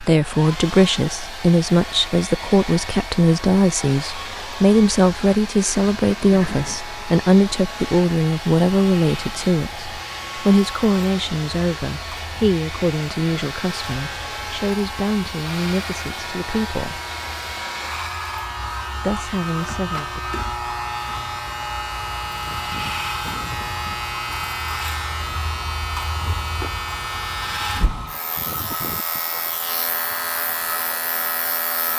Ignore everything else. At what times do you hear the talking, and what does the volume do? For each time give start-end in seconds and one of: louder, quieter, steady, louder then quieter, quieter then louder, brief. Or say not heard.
0.0-17.0 quieter
18.9-20.4 brief.